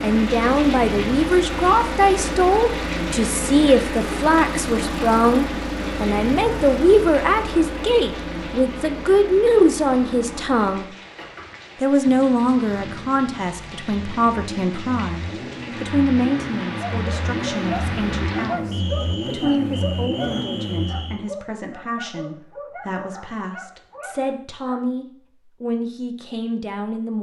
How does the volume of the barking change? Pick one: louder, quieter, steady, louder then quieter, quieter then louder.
quieter.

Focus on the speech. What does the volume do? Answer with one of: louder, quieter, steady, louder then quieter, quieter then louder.
quieter.